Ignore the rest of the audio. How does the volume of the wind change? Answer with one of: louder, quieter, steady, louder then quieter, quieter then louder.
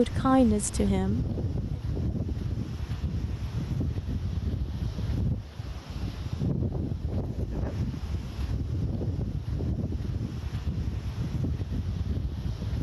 steady.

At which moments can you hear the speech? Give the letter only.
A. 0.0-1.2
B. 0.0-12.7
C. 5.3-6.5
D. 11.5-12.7
A.